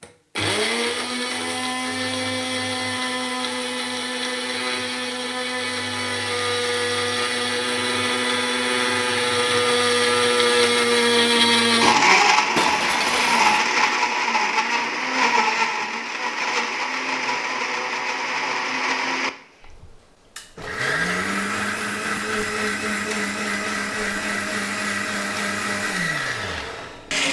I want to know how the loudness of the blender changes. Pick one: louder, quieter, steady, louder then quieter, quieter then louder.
louder then quieter.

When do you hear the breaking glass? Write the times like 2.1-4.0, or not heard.
12.6-13.7.